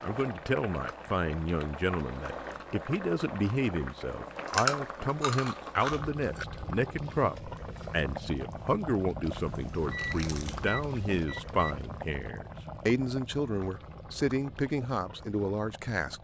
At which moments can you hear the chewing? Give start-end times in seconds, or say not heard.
4.5-6.5, 9.3-10.9.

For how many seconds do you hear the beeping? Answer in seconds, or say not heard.
2 s.